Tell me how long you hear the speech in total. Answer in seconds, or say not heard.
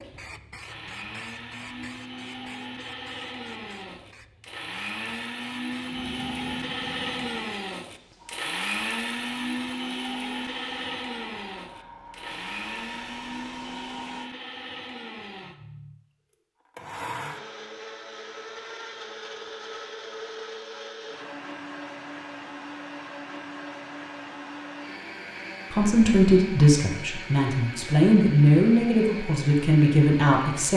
5 s.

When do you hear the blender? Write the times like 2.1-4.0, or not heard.
0.0-30.7.